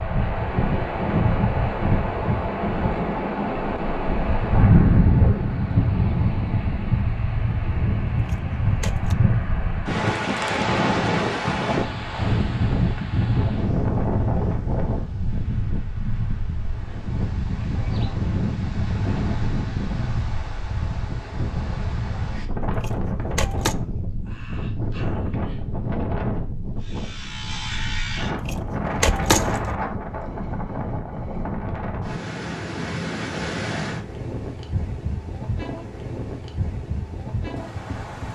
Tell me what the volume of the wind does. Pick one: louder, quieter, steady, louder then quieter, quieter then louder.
quieter.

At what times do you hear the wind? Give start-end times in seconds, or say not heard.
0.0-38.2.